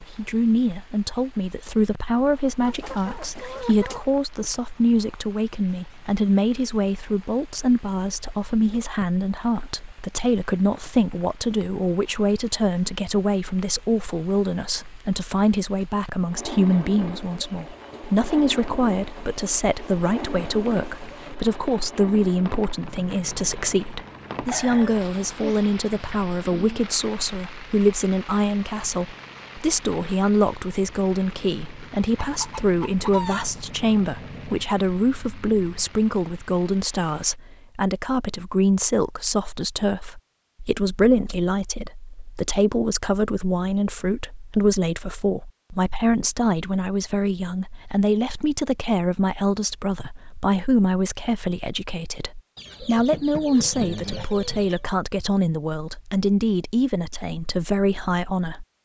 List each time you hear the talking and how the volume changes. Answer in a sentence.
The talking can be heard from 0.0 to 58.8 s, at a steady volume.